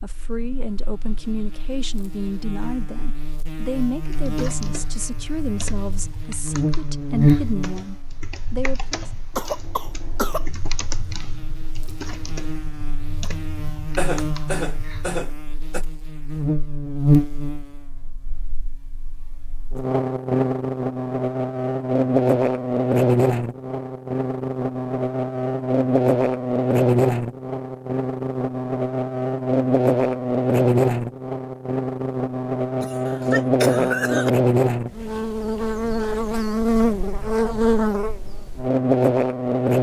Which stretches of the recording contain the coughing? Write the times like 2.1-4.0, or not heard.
9.3-10.5, 13.9-15.8, 32.8-34.3.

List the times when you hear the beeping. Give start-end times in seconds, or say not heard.
not heard.